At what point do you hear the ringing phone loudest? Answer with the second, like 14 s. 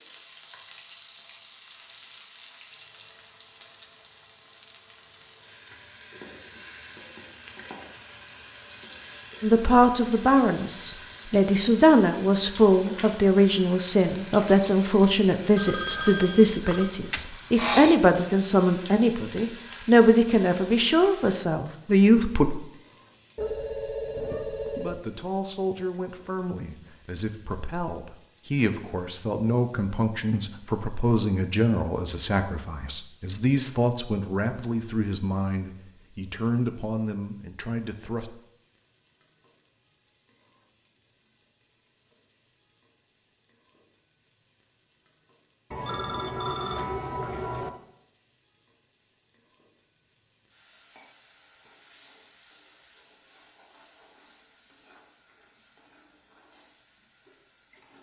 16 s.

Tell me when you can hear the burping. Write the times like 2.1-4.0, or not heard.
16.7-18.0.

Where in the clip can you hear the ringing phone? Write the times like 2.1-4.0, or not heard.
15.6-16.9, 23.4-25.1, 45.7-47.7.